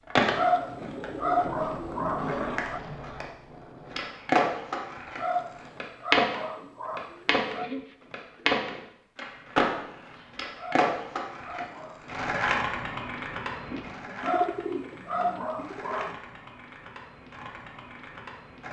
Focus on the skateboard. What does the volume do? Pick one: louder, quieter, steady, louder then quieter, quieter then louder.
louder then quieter.